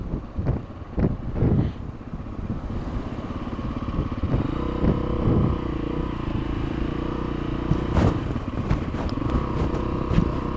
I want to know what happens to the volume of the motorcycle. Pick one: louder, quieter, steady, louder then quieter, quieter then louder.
louder.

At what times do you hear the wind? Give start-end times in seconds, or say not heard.
0.0-10.5.